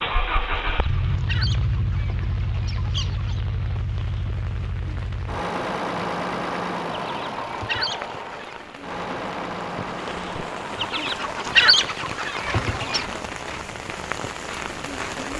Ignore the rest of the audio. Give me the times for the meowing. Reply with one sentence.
The meowing can be heard from 1.9 to 2.4 s, from 7.5 to 8.0 s and from 12.3 to 12.8 s.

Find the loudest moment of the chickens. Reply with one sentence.
The loudest moment of the chickens is at 12 seconds.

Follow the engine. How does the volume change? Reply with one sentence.
The loudness of the engine goes down.